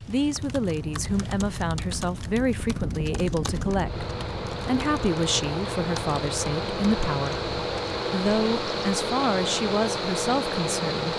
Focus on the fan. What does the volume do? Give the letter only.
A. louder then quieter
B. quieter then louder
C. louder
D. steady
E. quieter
C.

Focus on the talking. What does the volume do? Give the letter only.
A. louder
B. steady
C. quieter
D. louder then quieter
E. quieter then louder
B.